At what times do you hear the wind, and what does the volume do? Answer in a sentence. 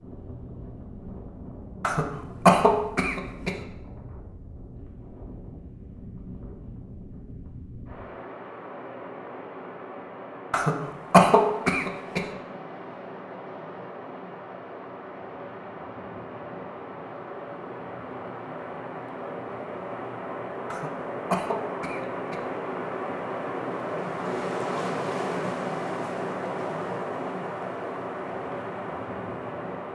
The wind can be heard from 0.0 to 29.8 s, getting louder.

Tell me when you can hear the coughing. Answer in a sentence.
You can hear the coughing from 1.8 to 3.5 s, from 10.5 to 12.2 s and from 20.7 to 22.4 s.